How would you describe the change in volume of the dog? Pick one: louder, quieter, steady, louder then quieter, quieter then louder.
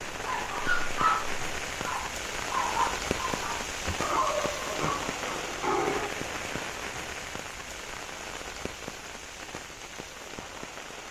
quieter.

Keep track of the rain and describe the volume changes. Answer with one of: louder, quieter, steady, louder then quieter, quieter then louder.
quieter.